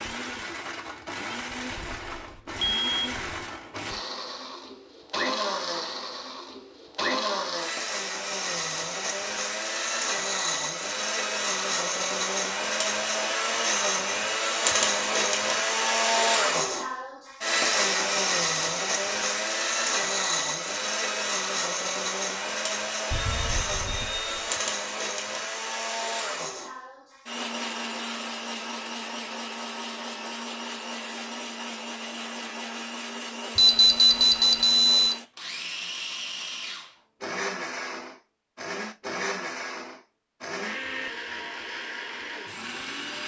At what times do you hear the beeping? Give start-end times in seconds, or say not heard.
1.8-3.5, 23.1-24.5, 33.5-35.1.